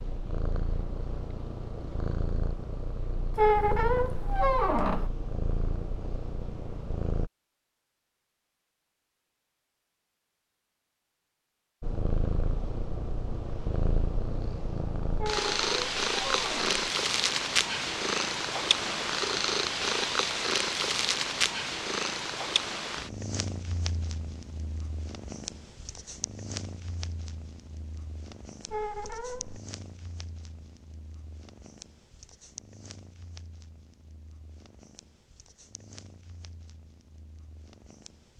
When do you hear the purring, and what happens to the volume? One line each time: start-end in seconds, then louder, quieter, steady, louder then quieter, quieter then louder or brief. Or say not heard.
0.0-7.3 steady
11.8-38.3 quieter.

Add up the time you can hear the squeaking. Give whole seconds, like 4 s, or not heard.
4 s.